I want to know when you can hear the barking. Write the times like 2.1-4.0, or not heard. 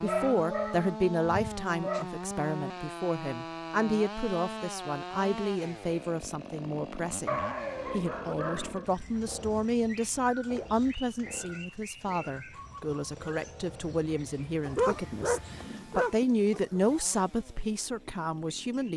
0.1-2.0, 7.2-8.8, 14.7-16.8.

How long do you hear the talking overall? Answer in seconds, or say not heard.
19 s.